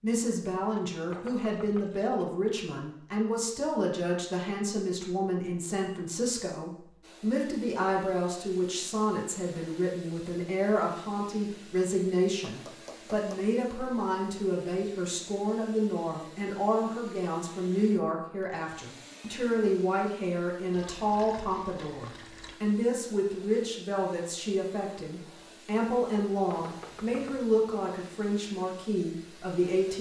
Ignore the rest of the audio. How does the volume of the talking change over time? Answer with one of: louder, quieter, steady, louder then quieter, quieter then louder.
steady.